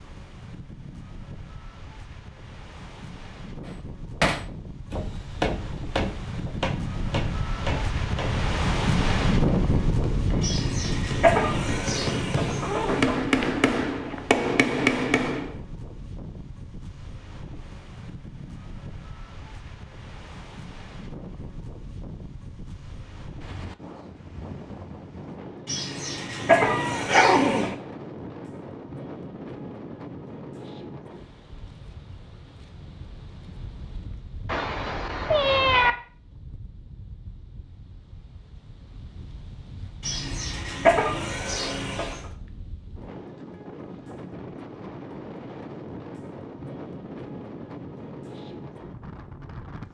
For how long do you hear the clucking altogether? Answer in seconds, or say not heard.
7 s.